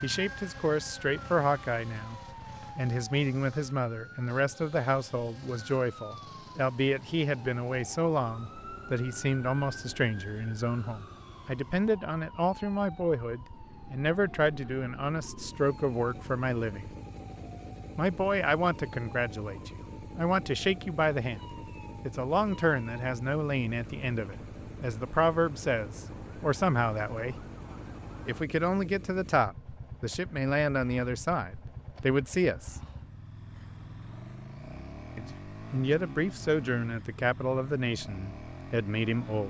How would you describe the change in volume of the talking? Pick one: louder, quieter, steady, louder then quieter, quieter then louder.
steady.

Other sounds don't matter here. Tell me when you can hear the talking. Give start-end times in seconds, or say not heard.
0.0-16.9, 17.9-21.4, 22.1-27.4, 28.2-32.8, 35.1-39.4.